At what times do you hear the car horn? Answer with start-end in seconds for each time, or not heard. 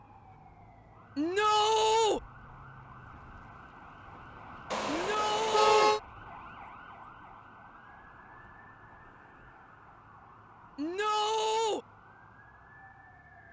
4.7-6.0.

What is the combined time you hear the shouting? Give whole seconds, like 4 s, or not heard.
3 s.